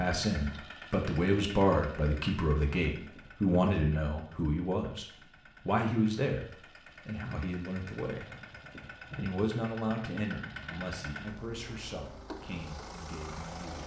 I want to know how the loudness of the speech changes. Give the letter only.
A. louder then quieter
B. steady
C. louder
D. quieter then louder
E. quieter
E.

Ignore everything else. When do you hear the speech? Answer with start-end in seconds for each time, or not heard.
0.0-8.3, 9.2-13.8.